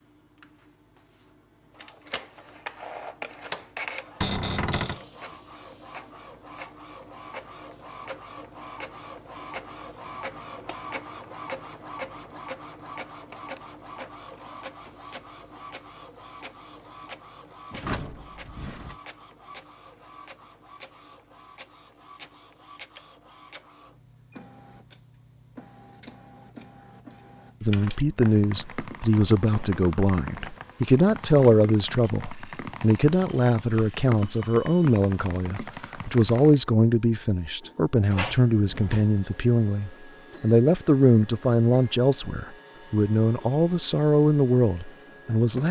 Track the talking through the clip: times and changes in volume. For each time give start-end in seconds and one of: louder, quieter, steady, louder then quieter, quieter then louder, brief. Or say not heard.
27.6-45.6 steady.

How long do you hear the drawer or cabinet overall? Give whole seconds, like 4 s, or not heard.
3 s.